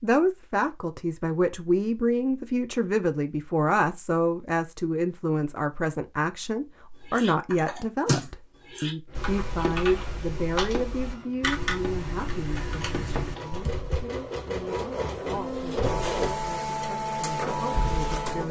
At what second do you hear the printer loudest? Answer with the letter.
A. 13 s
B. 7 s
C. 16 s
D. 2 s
C.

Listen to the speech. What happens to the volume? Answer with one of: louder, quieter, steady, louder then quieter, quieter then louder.
quieter.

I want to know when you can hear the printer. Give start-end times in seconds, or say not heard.
9.1-18.4.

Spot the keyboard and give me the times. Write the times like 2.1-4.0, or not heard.
7.0-14.1.